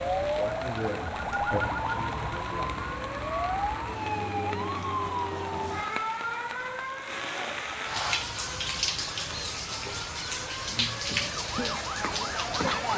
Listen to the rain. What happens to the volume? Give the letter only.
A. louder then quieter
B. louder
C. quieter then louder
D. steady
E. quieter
B.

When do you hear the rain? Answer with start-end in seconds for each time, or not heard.
0.0-12.9.